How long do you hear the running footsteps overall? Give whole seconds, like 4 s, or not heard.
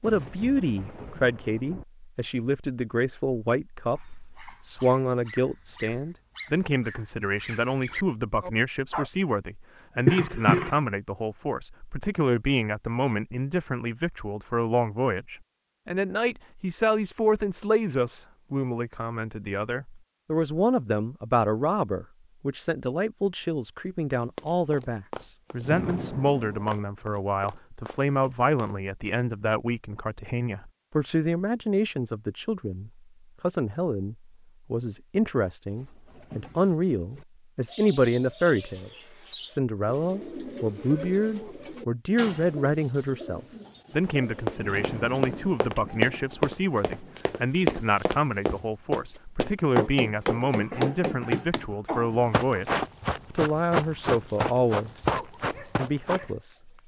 16 s.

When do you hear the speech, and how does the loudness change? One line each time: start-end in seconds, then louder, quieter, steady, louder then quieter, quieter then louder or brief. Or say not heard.
0.0-56.7 steady.